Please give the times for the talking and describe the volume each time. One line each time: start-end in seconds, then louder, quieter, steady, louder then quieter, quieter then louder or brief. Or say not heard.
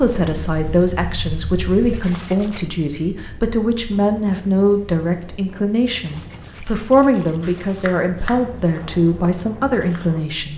0.0-10.5 steady.